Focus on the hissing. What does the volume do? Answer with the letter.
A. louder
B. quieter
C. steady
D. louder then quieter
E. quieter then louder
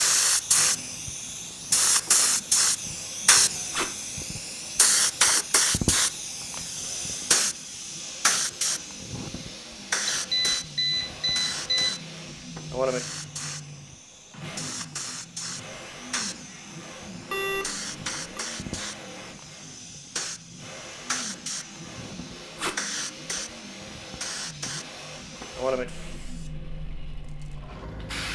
B.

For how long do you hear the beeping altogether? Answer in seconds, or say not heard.
3 s.